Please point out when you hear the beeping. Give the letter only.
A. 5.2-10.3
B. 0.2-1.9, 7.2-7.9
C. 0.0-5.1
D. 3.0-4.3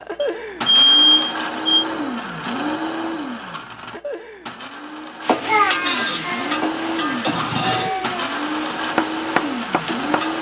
B.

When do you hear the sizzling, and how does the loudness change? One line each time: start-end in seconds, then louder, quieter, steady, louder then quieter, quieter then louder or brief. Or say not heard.
5.2-10.3 quieter.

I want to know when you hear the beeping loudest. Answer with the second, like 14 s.
1 s.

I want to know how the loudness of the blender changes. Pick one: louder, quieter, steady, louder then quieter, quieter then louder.
quieter then louder.